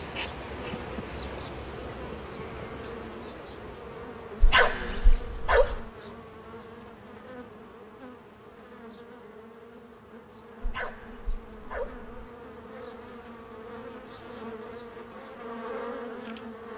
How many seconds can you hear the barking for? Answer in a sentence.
The barking can be heard for 3 seconds in total.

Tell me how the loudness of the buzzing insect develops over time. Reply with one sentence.
The loudness of the buzzing insect goes down, then up.